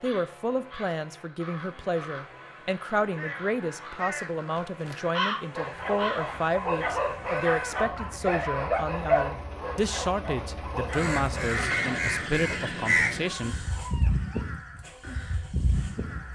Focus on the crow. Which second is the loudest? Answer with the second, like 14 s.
13 s.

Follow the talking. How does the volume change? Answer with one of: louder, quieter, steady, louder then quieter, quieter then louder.
steady.